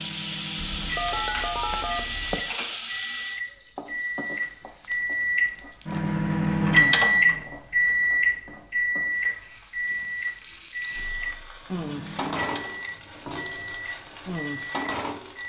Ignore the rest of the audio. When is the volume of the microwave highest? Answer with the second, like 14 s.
7 s.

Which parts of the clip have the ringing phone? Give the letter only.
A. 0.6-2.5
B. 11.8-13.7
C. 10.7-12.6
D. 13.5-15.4
A.